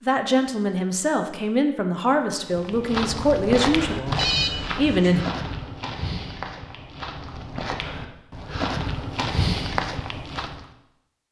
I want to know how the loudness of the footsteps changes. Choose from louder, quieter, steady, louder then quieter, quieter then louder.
quieter then louder.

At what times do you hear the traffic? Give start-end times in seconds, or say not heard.
not heard.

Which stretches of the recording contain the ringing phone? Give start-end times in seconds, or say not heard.
4.2-5.2.